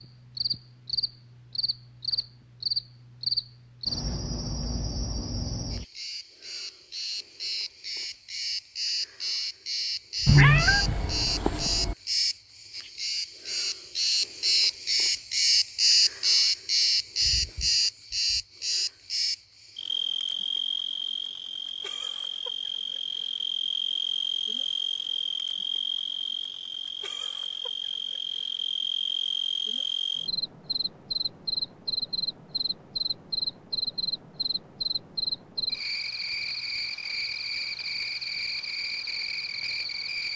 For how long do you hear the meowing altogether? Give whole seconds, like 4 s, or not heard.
2 s.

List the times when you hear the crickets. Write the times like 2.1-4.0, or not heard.
0.0-40.3.